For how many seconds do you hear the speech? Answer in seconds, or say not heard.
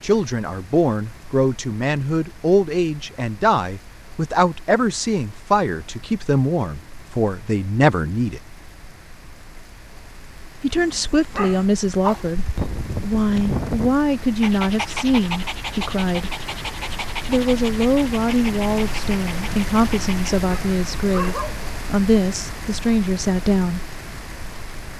21 s.